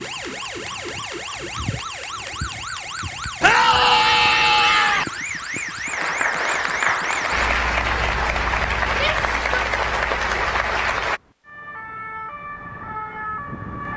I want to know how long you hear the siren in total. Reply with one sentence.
You can hear the siren for 14 seconds altogether.